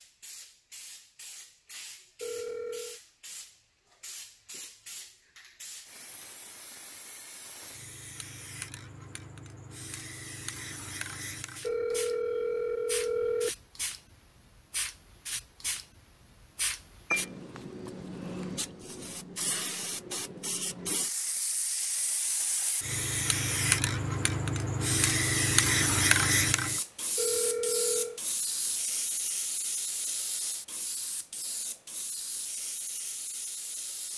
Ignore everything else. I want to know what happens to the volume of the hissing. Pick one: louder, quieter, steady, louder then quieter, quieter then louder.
louder then quieter.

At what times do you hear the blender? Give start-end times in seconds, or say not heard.
not heard.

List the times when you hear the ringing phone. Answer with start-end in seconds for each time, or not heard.
2.2-3.0, 11.6-13.6, 27.1-28.2.